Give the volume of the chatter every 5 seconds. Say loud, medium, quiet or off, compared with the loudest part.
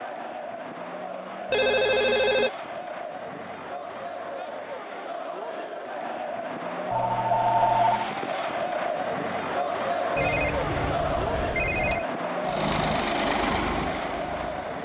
medium, loud, loud.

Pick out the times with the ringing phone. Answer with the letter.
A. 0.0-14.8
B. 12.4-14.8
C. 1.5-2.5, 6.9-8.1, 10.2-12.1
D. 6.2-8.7
C.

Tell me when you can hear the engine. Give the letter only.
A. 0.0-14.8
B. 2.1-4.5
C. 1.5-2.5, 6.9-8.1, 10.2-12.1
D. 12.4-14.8
D.